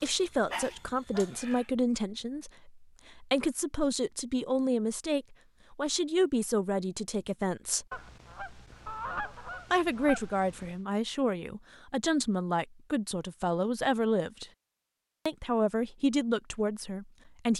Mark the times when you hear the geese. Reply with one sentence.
The geese can be heard from 7.9 to 10.8 s.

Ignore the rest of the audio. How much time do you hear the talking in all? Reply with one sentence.
The talking can be heard for 15 seconds in total.